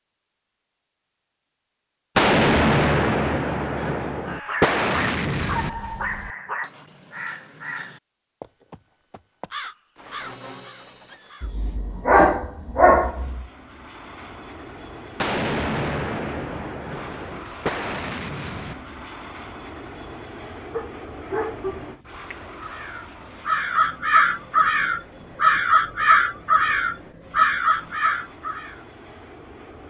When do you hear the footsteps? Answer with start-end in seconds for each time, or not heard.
not heard.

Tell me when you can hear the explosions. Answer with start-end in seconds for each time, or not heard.
2.1-5.7, 15.2-18.8.